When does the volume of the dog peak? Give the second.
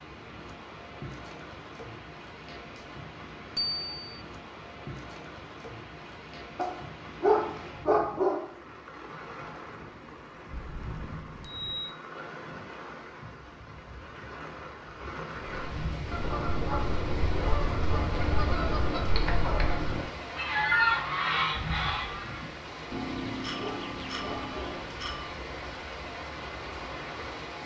7 s.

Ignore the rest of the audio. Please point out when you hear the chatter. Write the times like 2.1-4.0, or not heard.
not heard.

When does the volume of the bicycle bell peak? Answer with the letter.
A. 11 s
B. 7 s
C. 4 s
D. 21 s
C.